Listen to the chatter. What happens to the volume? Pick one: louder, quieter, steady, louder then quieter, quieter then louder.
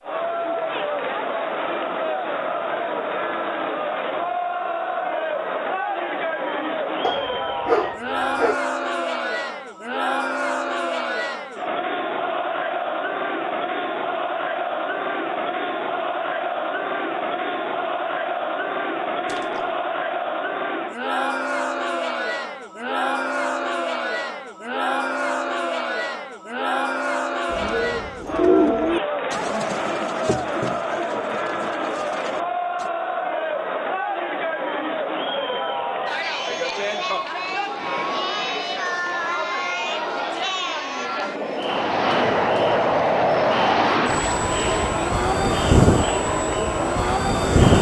steady.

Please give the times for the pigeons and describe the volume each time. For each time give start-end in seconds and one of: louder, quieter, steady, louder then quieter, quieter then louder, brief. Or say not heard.
27.5-32.9 quieter.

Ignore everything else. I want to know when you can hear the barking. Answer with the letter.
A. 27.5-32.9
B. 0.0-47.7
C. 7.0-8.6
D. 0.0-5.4
C.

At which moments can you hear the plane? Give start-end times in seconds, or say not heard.
41.5-47.7.